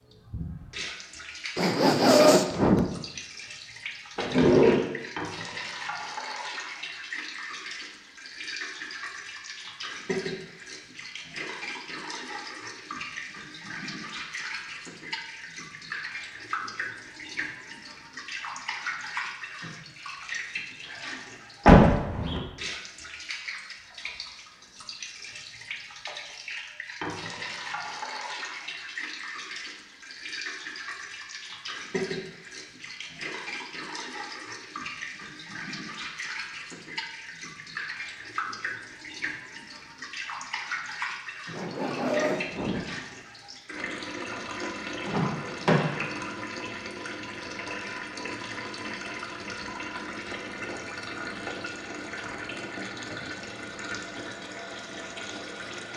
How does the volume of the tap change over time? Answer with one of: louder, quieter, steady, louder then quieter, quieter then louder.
steady.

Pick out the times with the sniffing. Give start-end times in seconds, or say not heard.
1.6-2.9, 41.5-42.9.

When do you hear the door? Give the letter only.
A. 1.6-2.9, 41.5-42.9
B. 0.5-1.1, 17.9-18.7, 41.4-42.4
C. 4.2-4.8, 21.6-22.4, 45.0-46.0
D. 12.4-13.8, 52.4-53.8
C.